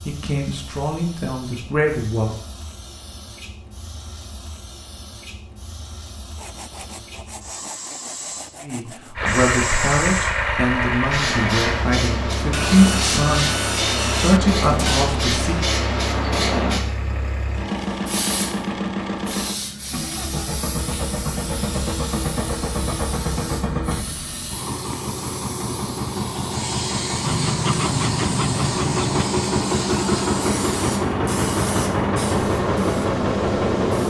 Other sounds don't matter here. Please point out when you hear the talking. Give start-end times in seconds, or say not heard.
0.1-2.4, 8.6-15.7.